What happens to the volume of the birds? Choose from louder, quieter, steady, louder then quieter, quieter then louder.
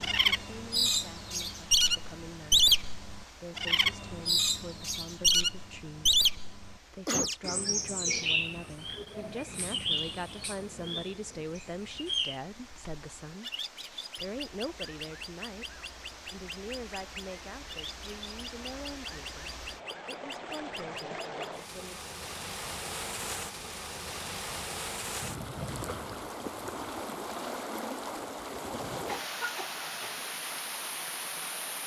quieter.